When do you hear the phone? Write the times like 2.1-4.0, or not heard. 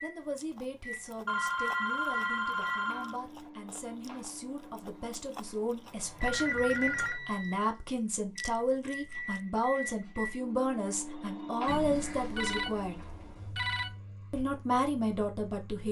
1.2-3.2, 6.2-7.2, 11.7-13.9.